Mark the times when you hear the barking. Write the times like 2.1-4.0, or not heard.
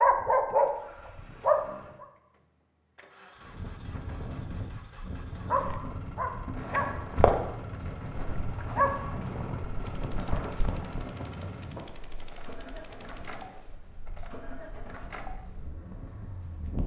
0.0-2.0, 5.5-11.1.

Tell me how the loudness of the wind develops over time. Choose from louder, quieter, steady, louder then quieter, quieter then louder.
quieter.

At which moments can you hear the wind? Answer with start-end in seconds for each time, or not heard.
3.4-16.8.